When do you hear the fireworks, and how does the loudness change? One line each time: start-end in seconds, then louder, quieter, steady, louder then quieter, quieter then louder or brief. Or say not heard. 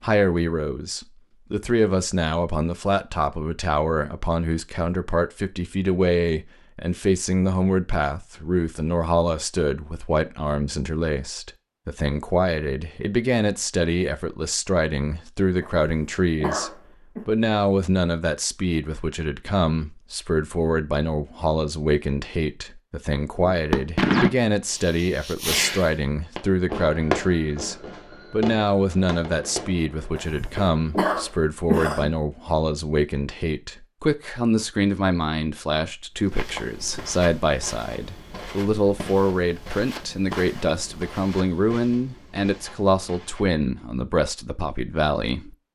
23.5-30.8 quieter.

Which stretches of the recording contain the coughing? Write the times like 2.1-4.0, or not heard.
15.6-17.2, 30.1-32.1.